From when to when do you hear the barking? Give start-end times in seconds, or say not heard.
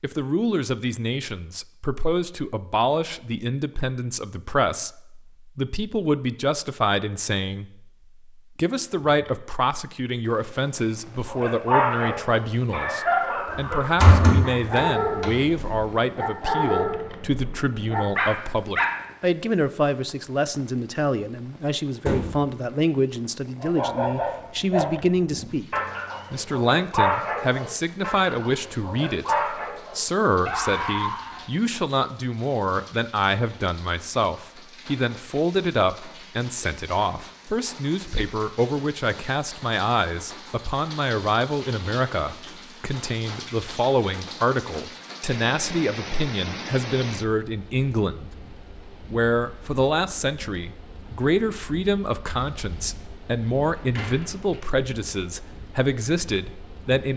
11.2-18.9, 23.6-31.4.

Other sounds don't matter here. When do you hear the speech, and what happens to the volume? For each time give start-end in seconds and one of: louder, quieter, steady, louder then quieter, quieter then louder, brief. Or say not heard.
0.0-48.3 steady
49.1-57.1 steady.